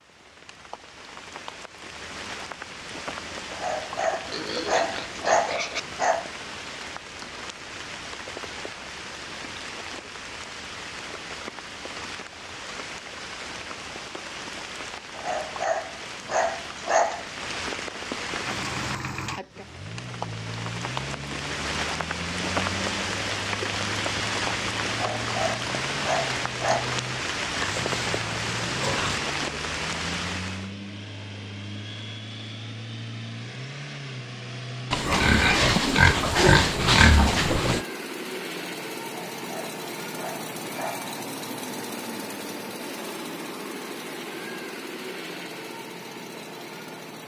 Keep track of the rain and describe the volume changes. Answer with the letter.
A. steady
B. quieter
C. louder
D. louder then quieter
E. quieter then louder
C.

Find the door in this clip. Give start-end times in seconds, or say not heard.
not heard.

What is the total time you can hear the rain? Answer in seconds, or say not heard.
31 s.